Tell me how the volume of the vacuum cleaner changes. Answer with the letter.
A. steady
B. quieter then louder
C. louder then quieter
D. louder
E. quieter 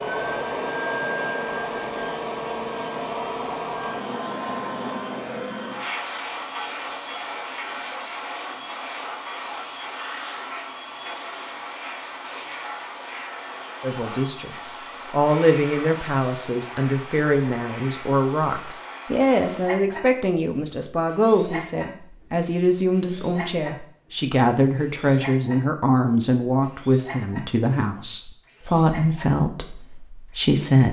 E.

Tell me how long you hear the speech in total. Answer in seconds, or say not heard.
17 s.